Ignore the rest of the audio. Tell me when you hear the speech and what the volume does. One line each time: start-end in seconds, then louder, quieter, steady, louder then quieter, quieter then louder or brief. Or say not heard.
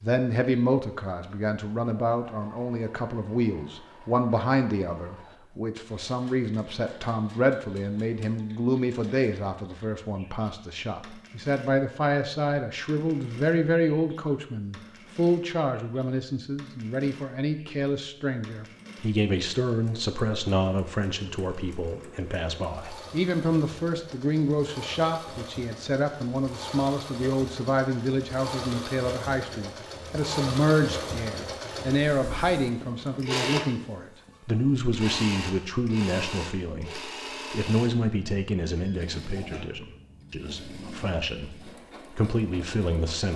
0.0-43.3 steady.